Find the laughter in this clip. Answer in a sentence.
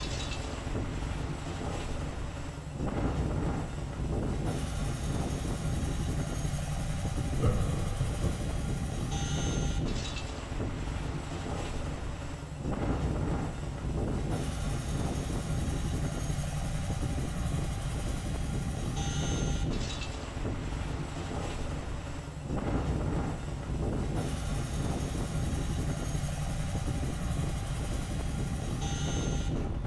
You can hear the laughter from 7.3 to 8.8 s.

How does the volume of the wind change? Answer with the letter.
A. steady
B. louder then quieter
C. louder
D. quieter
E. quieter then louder
A.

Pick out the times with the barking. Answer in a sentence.
You can't hear the barking here.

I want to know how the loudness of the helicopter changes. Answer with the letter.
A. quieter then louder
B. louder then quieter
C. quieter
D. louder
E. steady
E.